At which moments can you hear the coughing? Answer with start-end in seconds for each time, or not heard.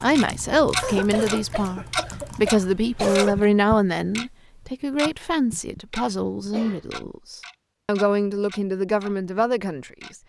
0.8-3.5, 6.0-6.8.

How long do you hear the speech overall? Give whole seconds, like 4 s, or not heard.
10 s.